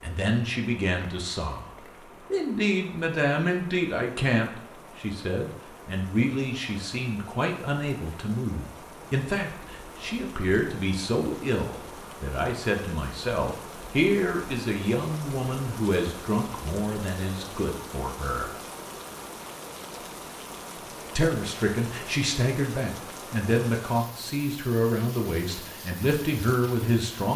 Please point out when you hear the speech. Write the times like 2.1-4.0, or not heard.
0.0-1.7, 2.3-18.6, 21.1-27.3.